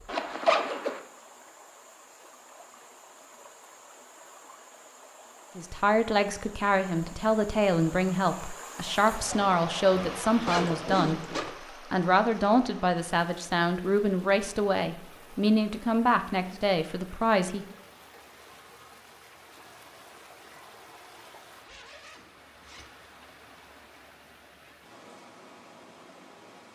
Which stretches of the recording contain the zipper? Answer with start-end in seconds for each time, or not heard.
0.1-1.0, 9.1-11.6, 21.6-22.9.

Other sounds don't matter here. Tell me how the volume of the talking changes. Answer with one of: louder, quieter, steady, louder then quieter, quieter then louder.
steady.